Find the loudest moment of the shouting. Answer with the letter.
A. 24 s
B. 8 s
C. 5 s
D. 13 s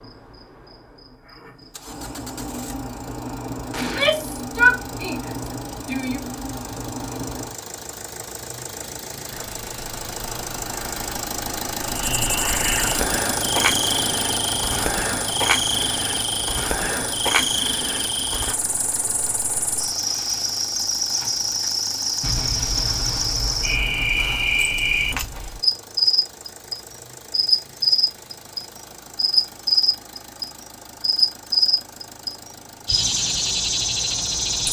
C.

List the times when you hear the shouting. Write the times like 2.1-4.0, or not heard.
3.8-6.2.